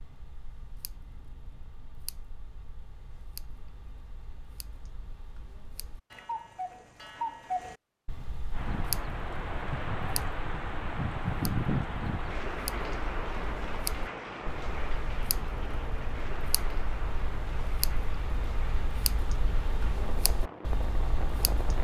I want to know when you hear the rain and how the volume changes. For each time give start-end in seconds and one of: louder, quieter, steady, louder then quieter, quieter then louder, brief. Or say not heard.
8.5-21.8 quieter.